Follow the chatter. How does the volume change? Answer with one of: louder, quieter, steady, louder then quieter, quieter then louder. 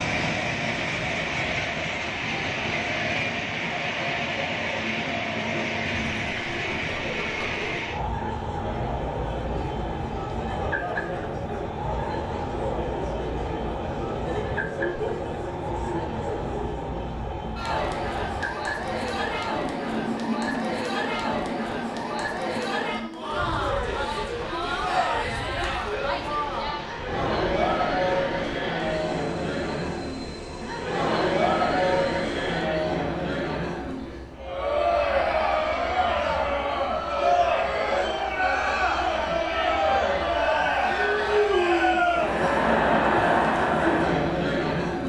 louder.